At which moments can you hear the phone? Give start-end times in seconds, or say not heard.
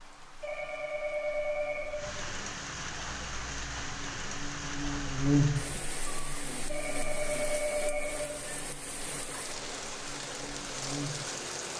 0.4-2.1, 6.7-8.4.